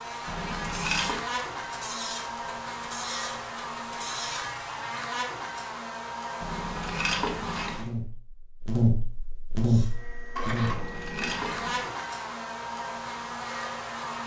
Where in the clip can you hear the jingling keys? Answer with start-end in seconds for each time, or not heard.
0.2-1.2, 6.4-7.9, 10.6-11.9.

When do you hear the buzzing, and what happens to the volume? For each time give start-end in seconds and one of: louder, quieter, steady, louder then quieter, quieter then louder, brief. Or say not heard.
0.0-14.2 louder then quieter.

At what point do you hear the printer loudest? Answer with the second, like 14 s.
11 s.